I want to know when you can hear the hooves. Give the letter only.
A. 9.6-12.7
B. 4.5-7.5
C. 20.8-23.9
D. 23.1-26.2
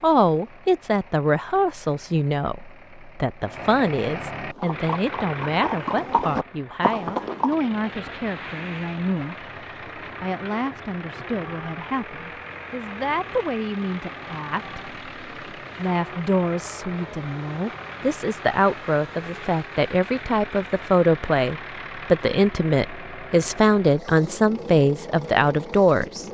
B.